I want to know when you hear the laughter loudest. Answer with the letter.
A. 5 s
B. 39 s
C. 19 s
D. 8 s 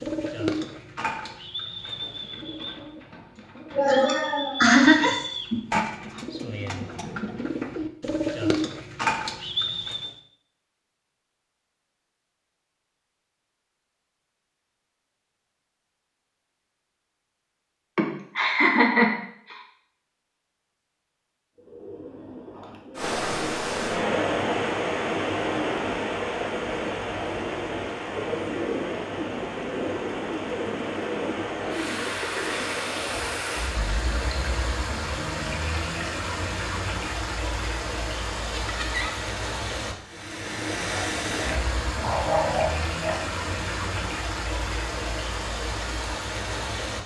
A.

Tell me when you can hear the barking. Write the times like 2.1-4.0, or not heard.
41.4-43.2.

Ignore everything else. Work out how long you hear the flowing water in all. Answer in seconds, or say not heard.
24 s.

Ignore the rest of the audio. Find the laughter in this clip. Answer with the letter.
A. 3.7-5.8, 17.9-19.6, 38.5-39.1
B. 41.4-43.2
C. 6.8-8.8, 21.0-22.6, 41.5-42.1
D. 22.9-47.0
A.